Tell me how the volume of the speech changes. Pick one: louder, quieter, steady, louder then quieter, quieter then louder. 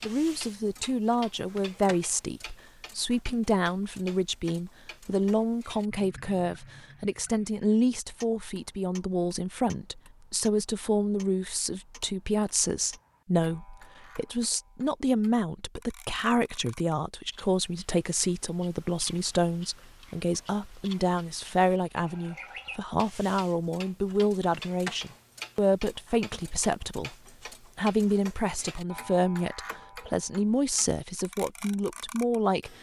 steady.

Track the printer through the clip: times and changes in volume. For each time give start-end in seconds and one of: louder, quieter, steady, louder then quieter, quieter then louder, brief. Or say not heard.
not heard.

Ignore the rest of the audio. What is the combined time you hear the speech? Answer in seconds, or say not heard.
32 s.